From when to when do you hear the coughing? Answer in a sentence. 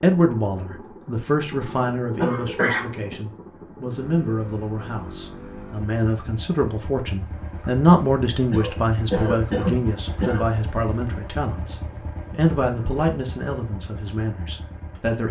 The coughing can be heard from 2.1 to 3.2 s and from 8.5 to 10.4 s.